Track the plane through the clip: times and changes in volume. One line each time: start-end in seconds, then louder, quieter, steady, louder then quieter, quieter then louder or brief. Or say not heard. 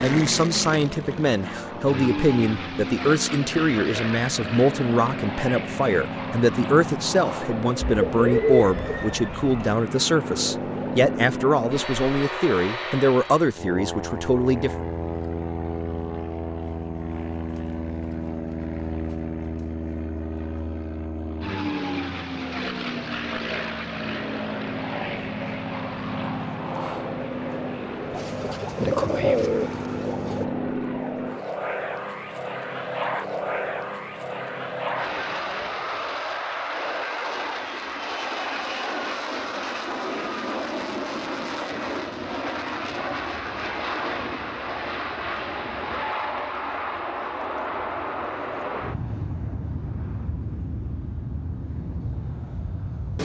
0.0-53.2 steady.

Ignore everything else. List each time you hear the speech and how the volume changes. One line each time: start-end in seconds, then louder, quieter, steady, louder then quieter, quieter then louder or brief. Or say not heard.
0.0-14.7 steady.